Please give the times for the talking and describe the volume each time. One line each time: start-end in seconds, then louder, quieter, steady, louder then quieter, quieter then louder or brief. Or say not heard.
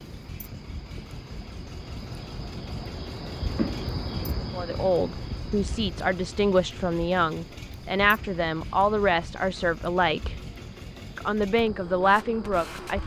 4.5-10.3 steady
11.2-13.0 brief.